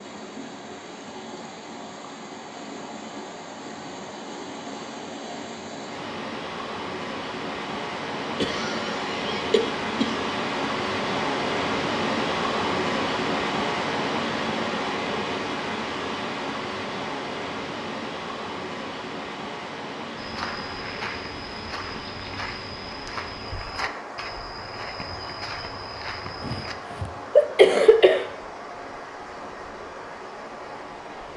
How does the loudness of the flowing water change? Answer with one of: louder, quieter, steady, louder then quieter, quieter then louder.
louder then quieter.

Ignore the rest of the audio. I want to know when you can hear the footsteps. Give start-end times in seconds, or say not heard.
20.1-26.8.